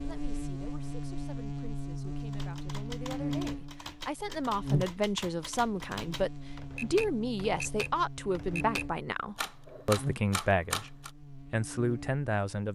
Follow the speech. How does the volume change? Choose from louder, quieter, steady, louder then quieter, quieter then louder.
louder.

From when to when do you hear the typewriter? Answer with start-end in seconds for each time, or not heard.
2.2-11.1.